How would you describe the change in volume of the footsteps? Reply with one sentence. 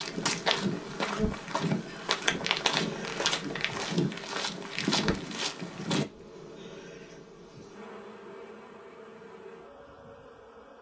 The volume of the footsteps stays about the same.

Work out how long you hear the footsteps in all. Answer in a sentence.
The footsteps can be heard for 6 seconds in total.